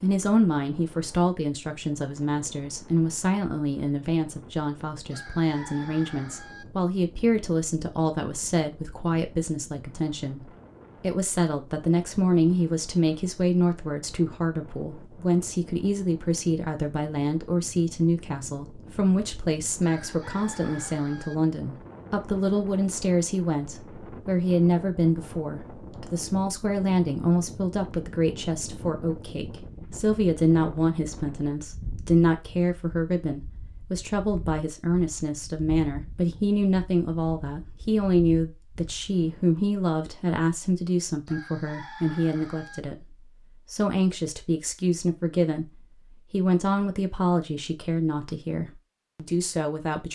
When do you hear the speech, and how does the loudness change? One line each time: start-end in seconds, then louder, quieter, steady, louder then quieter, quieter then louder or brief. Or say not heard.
0.0-50.1 steady.